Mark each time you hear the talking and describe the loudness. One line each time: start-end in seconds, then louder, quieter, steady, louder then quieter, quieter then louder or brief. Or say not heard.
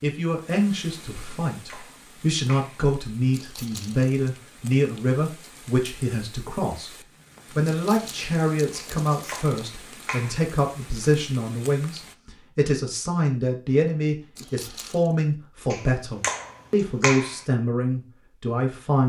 0.0-19.0 steady.